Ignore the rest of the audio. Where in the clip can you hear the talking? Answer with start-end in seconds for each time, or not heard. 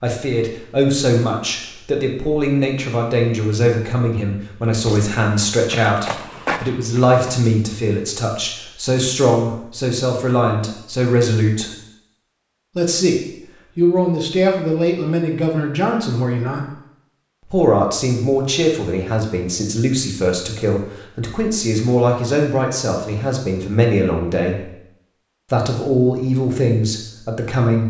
0.0-11.7, 12.8-16.7, 17.4-24.7, 25.5-27.8.